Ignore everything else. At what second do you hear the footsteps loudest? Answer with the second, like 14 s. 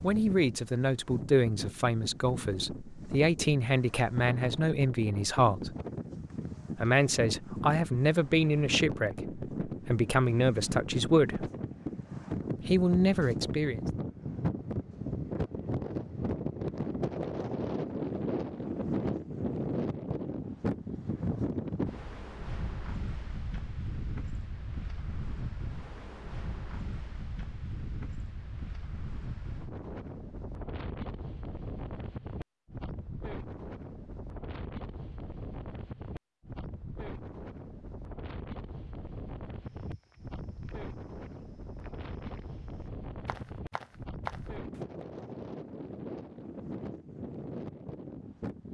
44 s.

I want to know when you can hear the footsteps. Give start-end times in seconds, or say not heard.
39.6-44.8.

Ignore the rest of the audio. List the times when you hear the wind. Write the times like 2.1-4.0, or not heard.
0.0-48.6.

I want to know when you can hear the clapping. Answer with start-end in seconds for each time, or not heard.
not heard.